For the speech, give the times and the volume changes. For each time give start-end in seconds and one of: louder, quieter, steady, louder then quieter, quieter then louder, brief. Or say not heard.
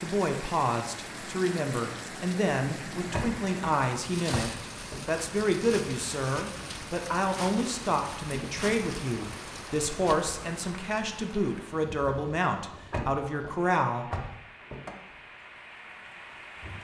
0.0-14.1 steady.